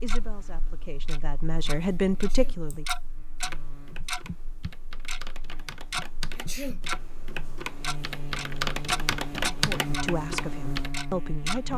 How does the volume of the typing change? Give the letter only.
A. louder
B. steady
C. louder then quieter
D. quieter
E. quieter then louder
A.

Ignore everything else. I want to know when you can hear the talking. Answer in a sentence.
You can hear the talking from 0.0 to 2.9 s and from 9.5 to 11.7 s.